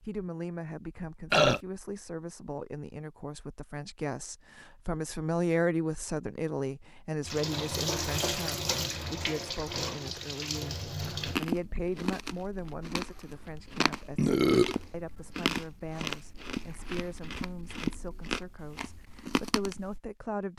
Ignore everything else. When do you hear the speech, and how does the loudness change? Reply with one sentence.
The speech can be heard from 0.0 to 20.5 s, getting louder then quieter.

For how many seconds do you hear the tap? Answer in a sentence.
You can hear the tap for 4 seconds altogether.